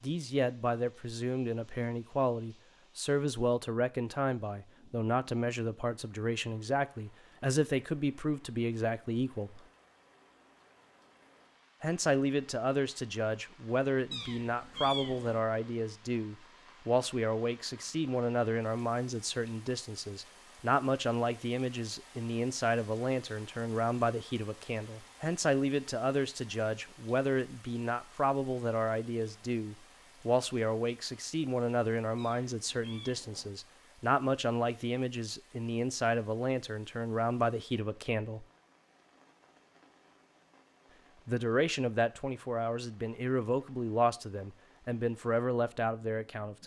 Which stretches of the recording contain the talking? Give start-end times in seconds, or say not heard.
0.0-9.7, 11.8-38.5, 41.2-46.6.